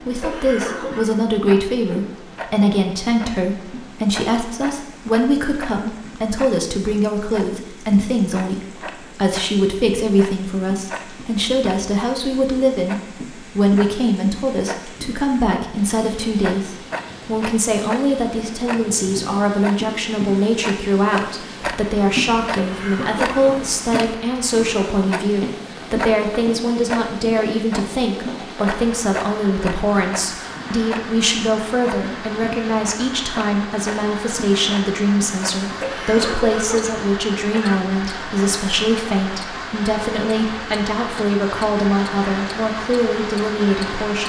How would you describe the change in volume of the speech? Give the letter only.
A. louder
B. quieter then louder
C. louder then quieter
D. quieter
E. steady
E.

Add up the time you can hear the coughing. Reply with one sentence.
The coughing can be heard for 4 seconds in total.